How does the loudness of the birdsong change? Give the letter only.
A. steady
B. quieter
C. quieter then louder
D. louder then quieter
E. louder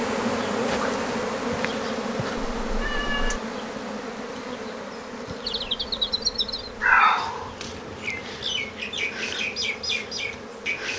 C.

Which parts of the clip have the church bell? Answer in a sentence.
You can't hear the church bell here.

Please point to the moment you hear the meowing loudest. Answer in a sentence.
The volume of the meowing peaks at 7 seconds.